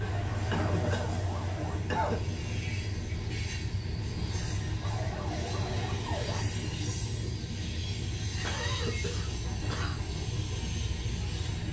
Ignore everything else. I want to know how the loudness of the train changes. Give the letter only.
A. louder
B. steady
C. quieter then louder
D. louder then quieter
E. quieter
B.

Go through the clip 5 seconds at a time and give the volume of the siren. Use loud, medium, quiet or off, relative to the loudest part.
loud, loud, off.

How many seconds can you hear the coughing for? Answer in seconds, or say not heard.
3 s.